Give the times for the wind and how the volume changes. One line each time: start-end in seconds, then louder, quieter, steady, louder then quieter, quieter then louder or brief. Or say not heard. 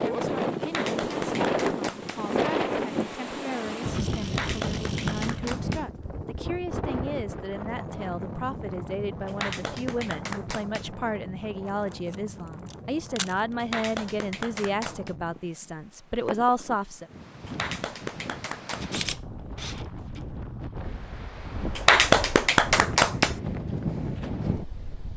0.0-25.1 quieter then louder.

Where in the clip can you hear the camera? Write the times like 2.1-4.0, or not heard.
3.9-5.4, 12.1-13.3, 18.7-20.2.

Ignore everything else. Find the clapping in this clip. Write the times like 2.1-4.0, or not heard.
0.6-2.2, 4.2-5.8, 9.2-10.8, 13.6-15.1, 17.4-19.0, 21.8-23.4.